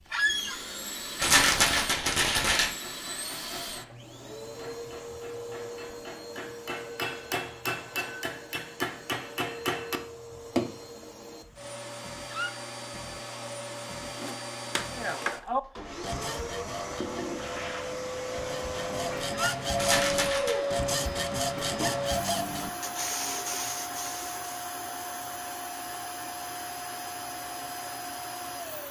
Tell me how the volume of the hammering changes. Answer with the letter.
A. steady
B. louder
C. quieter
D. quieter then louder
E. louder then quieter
B.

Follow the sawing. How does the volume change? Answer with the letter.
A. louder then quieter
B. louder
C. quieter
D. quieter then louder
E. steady
D.